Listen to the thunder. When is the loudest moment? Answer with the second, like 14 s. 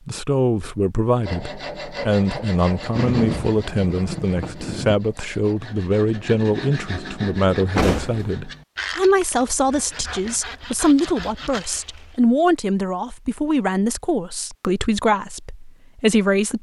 3 s.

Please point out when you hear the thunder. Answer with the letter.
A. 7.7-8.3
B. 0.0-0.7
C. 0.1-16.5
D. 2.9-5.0
D.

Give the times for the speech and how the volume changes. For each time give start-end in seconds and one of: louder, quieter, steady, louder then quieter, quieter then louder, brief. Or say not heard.
0.1-16.5 steady.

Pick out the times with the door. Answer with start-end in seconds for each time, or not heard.
7.7-8.3.